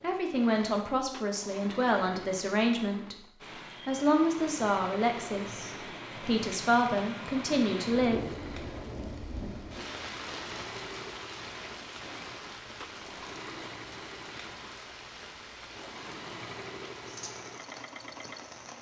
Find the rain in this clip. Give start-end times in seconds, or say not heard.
3.4-18.7.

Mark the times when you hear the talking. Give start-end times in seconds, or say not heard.
0.0-8.3.